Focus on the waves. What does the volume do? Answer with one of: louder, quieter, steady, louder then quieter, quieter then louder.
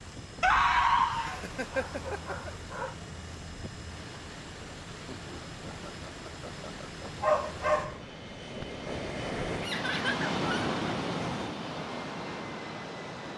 louder.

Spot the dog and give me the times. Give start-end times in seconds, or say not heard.
0.4-3.0, 7.0-8.1.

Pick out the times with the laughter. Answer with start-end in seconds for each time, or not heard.
1.1-2.5, 5.1-7.1, 9.6-10.8.